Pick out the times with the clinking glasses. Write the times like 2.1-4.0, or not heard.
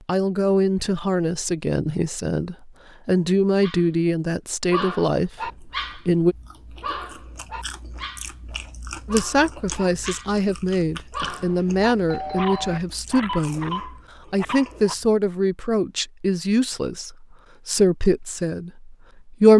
not heard.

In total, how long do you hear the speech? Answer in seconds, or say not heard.
17 s.